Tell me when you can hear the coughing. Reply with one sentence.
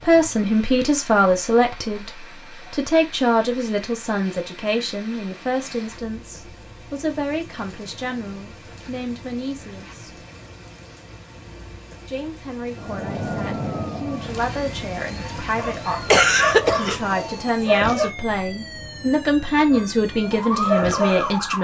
The coughing can be heard from 16.1 to 17.0 s.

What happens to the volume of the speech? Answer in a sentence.
The loudness of the speech goes down, then up.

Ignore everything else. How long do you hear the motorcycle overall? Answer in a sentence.
The motorcycle can't be heard in this clip.